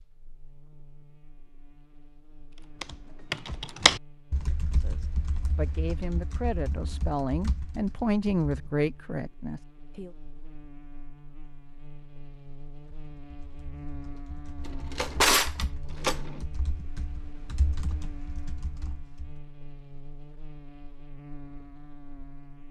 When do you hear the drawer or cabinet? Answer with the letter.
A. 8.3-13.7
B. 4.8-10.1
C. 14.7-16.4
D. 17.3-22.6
C.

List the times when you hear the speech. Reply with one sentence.
The speech can be heard from 4.8 to 10.1 s.